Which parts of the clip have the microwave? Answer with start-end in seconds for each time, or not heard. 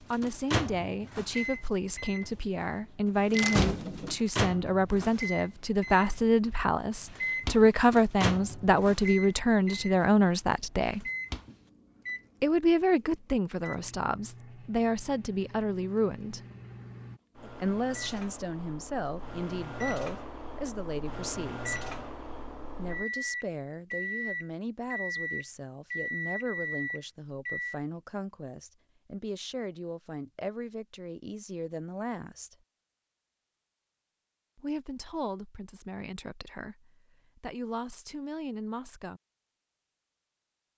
0.0-27.8.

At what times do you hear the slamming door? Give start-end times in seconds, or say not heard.
3.3-4.2.